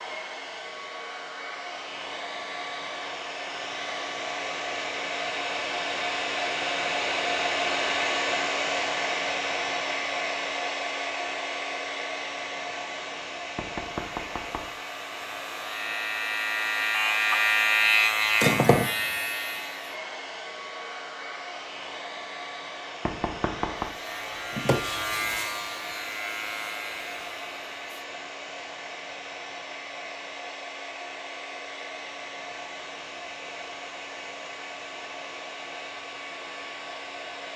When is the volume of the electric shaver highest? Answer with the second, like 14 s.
18 s.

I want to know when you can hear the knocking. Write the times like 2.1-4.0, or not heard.
13.6-14.7, 23.1-23.9.